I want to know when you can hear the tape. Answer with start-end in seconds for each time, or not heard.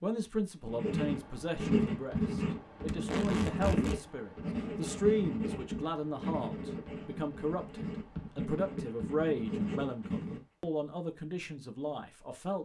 2.9-4.0.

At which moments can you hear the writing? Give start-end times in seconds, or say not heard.
0.7-10.4.